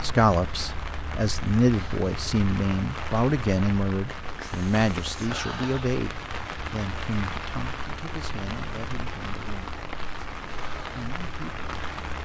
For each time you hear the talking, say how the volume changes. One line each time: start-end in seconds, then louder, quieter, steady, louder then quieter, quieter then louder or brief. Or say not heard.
0.0-9.8 quieter
10.9-11.9 brief.